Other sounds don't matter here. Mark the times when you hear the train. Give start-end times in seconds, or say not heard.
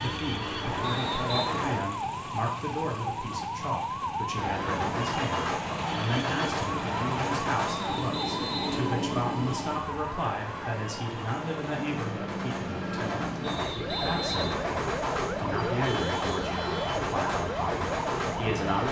0.0-1.8, 4.3-18.8.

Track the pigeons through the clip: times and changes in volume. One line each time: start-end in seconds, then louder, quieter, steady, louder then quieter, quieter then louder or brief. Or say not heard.
not heard.